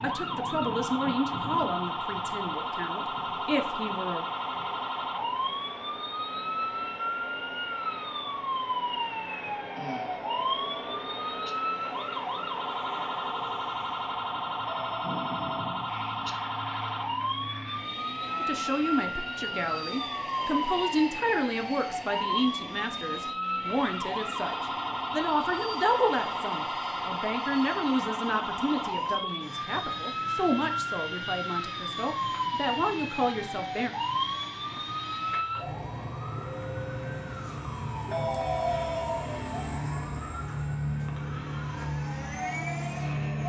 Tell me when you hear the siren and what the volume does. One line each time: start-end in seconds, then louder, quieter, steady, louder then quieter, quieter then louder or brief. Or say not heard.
0.0-43.4 steady.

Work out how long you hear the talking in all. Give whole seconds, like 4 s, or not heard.
20 s.